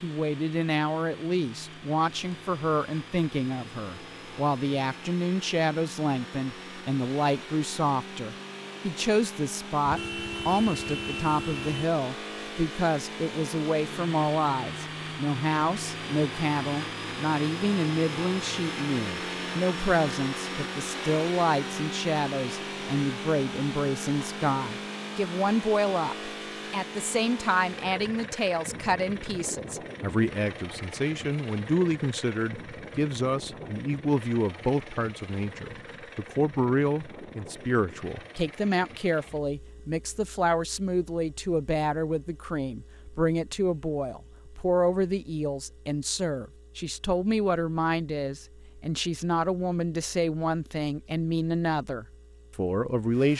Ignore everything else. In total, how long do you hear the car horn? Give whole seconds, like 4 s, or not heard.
2 s.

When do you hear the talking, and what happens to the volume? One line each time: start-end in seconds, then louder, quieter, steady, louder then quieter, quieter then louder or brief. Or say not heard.
0.0-53.3 steady.